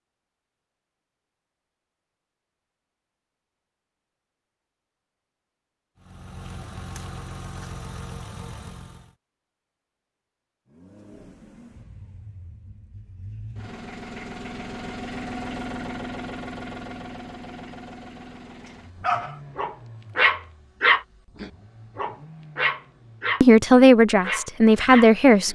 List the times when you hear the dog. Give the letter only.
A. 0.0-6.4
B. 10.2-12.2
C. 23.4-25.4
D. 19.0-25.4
D.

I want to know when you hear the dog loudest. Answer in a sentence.
The volume of the dog peaks at 21 seconds.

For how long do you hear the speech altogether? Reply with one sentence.
You can hear the speech for 2 seconds altogether.